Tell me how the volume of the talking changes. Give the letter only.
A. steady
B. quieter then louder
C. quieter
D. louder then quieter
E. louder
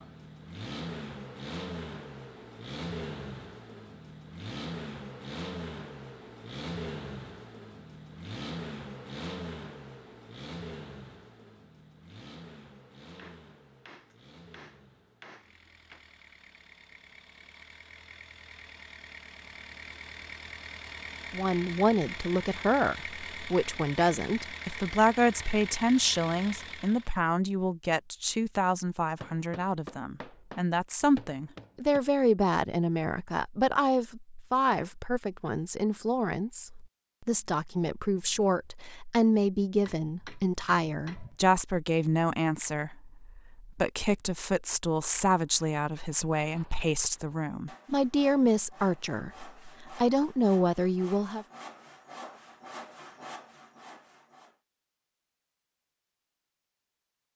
A.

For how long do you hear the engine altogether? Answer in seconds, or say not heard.
27 s.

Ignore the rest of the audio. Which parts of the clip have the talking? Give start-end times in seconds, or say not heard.
21.3-51.5.